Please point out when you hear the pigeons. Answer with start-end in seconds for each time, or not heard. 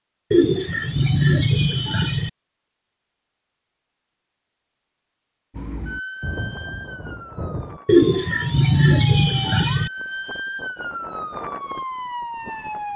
0.3-2.3, 7.8-9.9.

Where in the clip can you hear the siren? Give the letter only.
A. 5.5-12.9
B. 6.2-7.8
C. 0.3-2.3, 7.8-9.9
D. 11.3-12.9
A.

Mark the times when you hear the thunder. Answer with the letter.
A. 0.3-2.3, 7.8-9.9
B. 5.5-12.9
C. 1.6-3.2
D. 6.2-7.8
D.